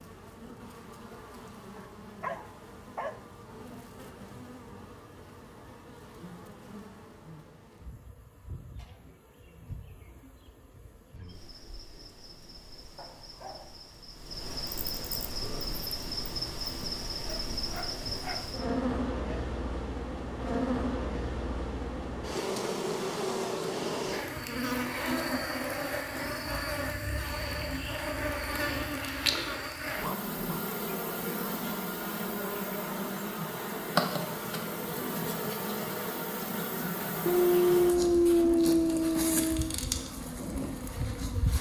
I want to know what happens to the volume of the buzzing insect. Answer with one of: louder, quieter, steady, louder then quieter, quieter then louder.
louder.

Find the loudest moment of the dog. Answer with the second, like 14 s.
38 s.